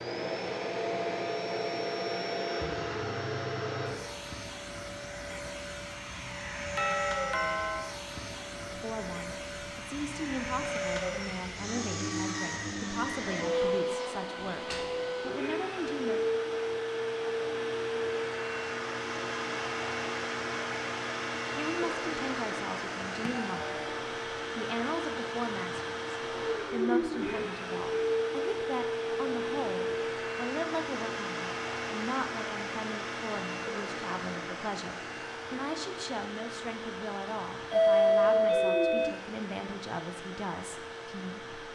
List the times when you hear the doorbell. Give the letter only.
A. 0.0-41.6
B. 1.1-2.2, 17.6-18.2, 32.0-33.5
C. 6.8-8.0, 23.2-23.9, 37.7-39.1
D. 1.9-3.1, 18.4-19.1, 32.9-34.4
C.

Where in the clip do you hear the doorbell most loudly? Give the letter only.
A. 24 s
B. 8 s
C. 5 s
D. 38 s
D.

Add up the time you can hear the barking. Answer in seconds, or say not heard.
not heard.